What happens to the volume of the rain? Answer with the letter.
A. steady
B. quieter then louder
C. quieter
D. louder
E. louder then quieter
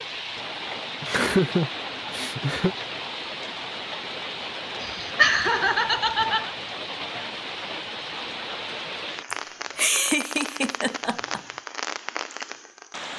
A.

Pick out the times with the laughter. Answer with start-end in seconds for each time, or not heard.
1.0-2.8, 4.8-6.5, 9.3-11.4.